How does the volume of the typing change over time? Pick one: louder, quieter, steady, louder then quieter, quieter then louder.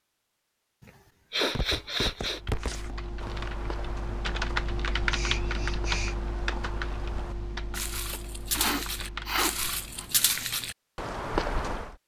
louder then quieter.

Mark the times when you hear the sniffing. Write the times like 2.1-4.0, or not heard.
0.8-2.4, 5.0-6.2, 8.1-10.1.